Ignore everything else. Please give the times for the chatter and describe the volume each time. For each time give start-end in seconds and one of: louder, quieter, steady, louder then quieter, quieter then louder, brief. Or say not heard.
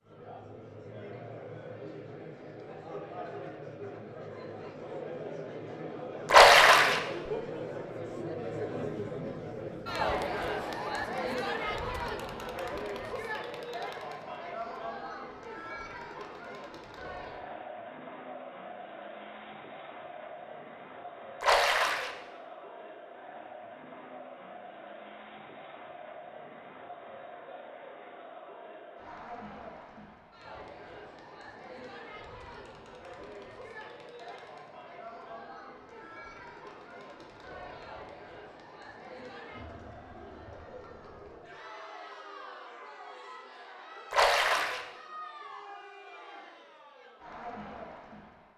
0.0-48.5 quieter.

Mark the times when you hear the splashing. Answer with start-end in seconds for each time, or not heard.
6.3-7.0, 21.4-22.1, 44.1-44.9.